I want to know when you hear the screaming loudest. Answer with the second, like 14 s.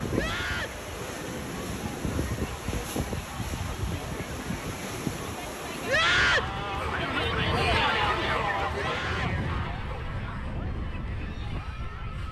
6 s.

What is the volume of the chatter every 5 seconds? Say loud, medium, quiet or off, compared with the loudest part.
quiet, loud, quiet.